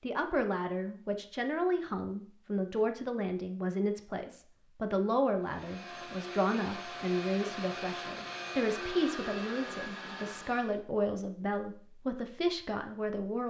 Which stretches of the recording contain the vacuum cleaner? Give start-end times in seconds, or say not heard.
5.4-10.8.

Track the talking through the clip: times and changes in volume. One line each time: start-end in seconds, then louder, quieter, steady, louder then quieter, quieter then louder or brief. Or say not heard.
0.0-13.4 steady.